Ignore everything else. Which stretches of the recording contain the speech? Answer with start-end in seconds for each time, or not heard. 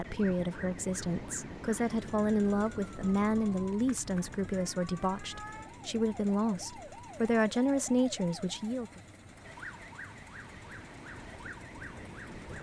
0.0-9.0.